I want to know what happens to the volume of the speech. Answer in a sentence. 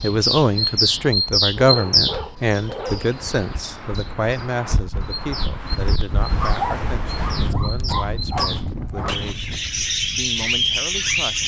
The loudness of the speech goes down.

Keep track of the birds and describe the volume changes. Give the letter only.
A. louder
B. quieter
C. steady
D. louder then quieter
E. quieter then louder
E.